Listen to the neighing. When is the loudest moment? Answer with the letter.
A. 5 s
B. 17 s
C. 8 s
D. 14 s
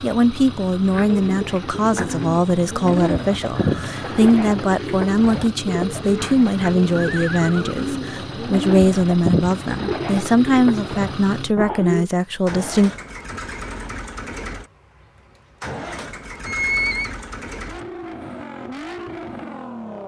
B.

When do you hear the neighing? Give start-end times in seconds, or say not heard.
3.5-4.2, 7.0-8.0, 16.4-17.1.